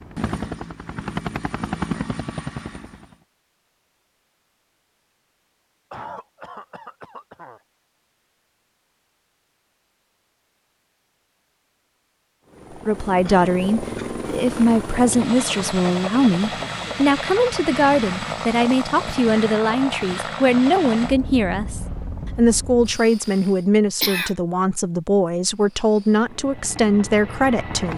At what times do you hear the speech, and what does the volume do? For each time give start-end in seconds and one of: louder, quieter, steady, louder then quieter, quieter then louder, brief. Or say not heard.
12.8-27.9 steady.